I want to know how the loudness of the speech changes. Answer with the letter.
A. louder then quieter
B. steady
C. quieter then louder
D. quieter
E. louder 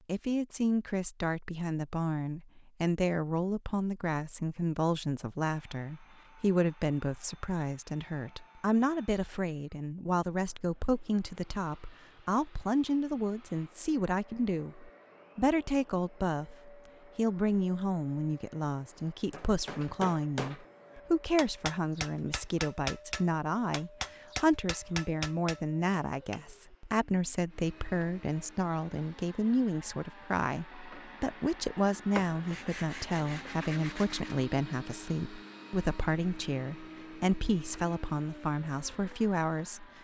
B.